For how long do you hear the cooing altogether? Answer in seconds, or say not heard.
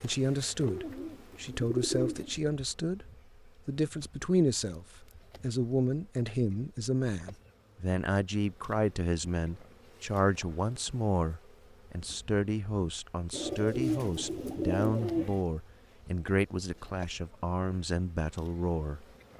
4 s.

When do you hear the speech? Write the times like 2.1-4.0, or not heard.
0.0-19.1.